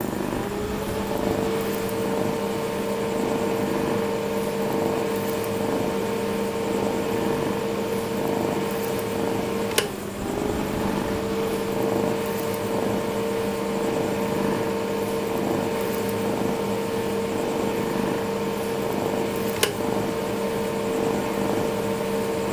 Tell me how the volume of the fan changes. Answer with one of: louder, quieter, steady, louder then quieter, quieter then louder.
steady.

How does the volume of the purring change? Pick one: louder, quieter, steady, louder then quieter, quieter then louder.
steady.